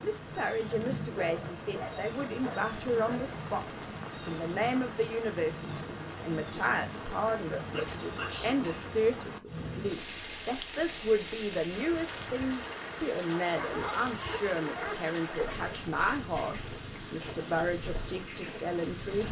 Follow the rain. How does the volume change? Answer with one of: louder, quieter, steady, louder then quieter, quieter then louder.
steady.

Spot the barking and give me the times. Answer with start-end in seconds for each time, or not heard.
0.7-3.4, 7.7-8.9, 13.3-15.7.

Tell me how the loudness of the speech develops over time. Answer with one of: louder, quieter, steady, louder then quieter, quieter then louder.
steady.